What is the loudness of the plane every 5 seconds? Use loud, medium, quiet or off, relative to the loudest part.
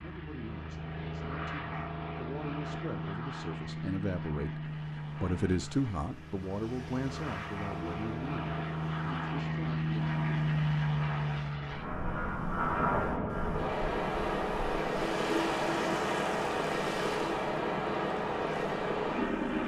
medium, medium, loud, loud.